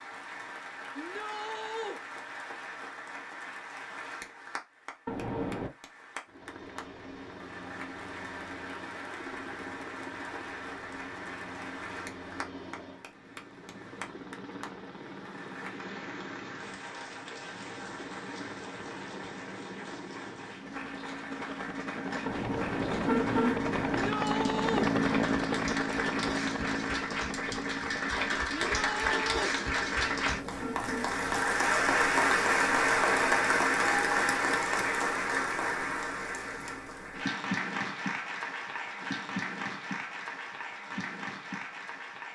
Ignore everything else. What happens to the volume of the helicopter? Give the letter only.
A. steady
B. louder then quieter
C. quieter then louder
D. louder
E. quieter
B.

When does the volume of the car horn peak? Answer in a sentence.
The loudest moment of the car horn is at 23 seconds.